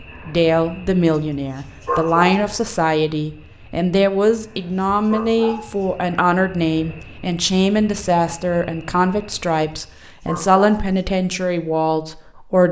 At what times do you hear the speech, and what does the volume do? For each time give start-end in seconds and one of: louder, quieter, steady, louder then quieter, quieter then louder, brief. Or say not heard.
0.0-12.6 steady.